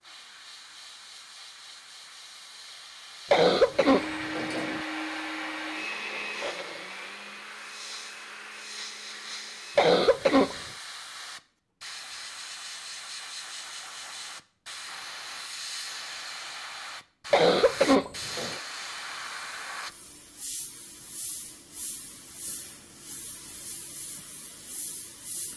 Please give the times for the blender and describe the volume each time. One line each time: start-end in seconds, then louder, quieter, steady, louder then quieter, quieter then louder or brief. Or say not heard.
3.8-9.9 quieter.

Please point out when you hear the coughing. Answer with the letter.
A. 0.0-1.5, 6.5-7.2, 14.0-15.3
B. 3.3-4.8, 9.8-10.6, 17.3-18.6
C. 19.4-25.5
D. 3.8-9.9
B.